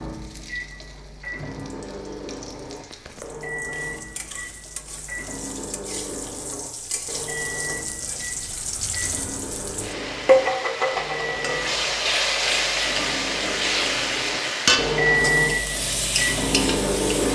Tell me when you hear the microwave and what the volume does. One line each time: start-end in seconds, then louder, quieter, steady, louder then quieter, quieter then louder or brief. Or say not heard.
0.0-17.2 louder.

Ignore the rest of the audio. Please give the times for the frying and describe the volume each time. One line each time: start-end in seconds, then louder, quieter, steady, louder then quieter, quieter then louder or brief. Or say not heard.
0.0-17.2 louder.